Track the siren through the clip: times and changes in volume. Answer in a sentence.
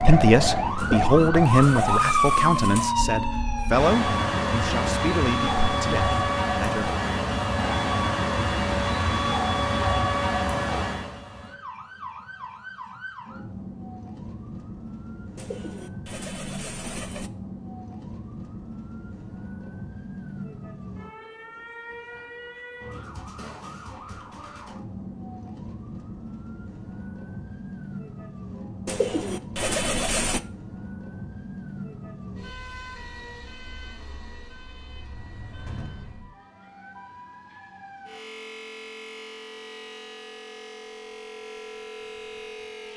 The siren can be heard from 0.0 to 42.9 s, getting quieter.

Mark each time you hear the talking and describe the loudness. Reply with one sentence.
You can hear the talking from 0.0 to 7.0 s, getting quieter.